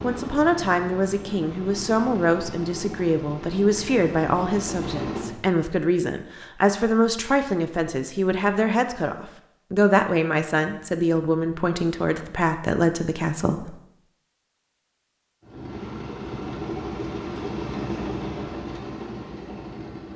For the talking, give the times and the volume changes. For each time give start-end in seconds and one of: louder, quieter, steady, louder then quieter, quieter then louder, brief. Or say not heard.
0.0-13.8 steady.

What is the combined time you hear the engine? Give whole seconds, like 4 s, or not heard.
10 s.